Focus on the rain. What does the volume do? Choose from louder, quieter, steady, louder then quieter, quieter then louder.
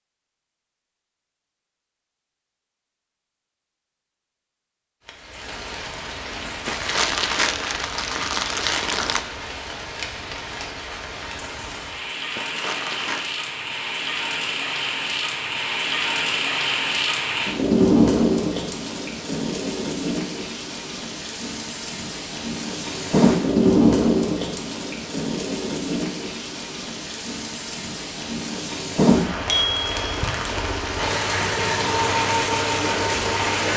louder.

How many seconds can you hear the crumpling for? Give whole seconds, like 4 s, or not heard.
4 s.